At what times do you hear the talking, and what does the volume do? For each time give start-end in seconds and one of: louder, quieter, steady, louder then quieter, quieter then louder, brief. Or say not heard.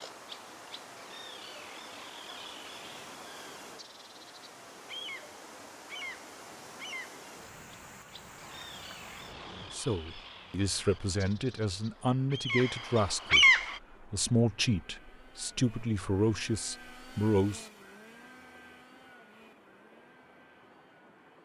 9.7-17.6 steady.